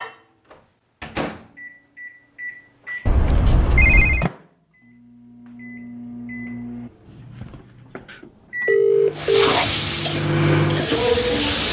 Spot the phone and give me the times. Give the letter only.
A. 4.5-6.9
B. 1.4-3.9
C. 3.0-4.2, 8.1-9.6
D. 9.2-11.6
C.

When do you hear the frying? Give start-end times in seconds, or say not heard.
9.2-11.6.